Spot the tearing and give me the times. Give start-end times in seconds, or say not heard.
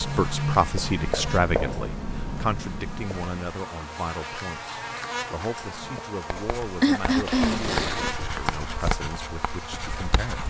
7.1-8.2.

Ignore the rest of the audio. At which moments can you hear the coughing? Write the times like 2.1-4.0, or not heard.
6.8-7.7.